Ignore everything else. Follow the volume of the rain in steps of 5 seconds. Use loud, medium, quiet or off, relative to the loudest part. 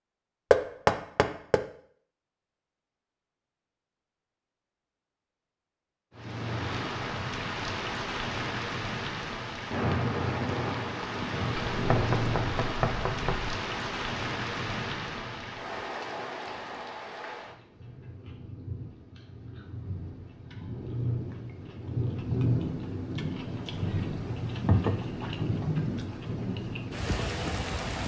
off, loud, loud, medium, loud, loud.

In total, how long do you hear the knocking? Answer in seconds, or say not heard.
3 s.